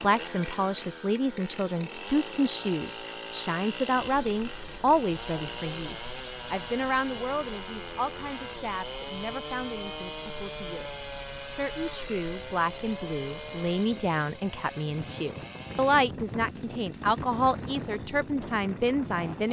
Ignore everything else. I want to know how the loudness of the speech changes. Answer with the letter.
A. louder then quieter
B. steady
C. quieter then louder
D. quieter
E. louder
C.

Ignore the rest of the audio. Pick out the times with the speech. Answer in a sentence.
The speech can be heard from 0.0 to 19.4 s.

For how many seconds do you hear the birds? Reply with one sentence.
You can't hear the birds here.